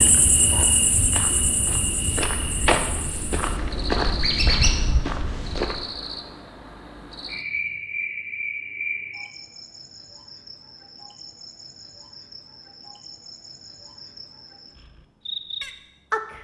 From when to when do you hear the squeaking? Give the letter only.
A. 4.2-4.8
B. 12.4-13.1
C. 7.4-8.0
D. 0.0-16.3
A.